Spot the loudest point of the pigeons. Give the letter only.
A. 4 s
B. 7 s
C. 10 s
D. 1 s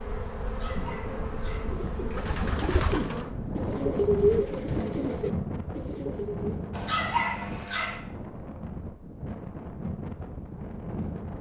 A.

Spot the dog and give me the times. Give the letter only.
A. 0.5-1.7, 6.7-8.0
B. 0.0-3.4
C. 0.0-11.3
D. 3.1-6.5
A.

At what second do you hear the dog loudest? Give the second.
7 s.